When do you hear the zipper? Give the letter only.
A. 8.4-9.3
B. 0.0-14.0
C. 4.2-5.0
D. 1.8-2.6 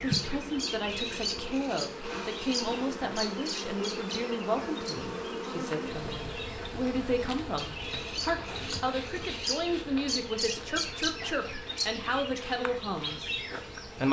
A.